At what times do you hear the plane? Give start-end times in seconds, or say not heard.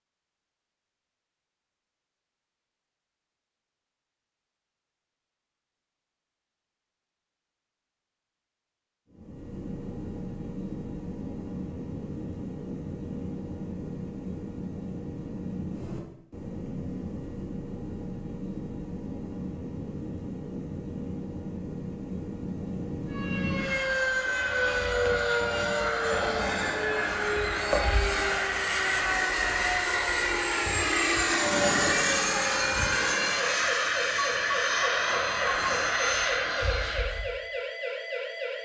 9.1-37.3.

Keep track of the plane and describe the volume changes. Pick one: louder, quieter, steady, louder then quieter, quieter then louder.
louder.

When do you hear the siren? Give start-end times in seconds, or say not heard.
23.1-38.6.